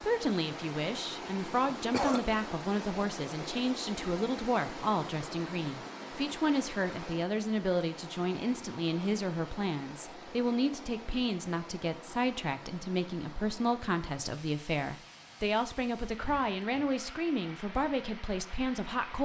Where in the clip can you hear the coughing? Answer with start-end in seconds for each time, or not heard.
1.6-2.4.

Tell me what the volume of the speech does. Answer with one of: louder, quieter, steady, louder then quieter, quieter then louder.
steady.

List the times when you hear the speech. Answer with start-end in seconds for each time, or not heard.
0.0-19.2.